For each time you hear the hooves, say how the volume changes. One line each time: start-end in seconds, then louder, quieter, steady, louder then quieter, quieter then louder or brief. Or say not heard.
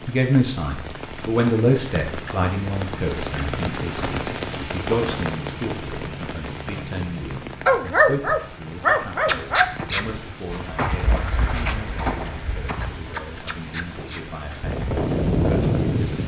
9.2-16.2 quieter then louder.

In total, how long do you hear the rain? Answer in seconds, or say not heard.
16 s.